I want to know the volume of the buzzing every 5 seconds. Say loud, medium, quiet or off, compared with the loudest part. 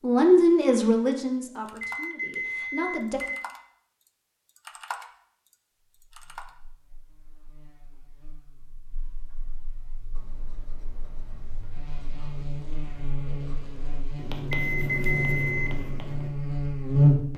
off, quiet, quiet, loud.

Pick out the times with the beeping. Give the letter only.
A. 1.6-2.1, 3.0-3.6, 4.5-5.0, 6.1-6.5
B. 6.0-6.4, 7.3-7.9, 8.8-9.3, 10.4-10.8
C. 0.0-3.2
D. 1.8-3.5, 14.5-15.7
D.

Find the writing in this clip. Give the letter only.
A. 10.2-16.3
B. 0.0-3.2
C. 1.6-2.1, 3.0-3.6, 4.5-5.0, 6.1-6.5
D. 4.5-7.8
A.